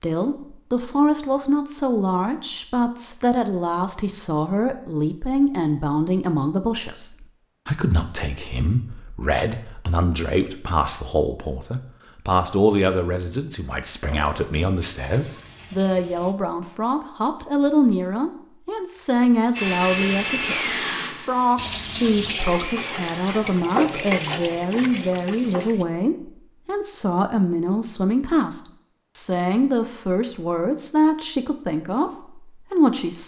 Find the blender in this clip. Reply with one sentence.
You can hear the blender from 19.6 to 24.4 s.